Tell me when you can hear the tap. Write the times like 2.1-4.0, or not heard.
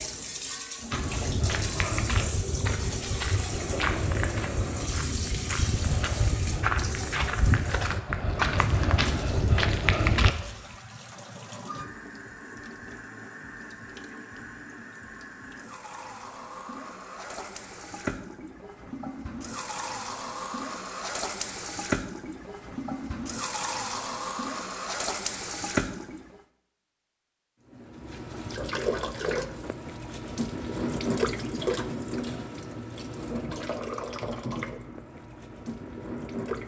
0.0-26.4, 27.6-36.6.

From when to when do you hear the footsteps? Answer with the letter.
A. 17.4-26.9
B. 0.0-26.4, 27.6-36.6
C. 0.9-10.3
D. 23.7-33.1
C.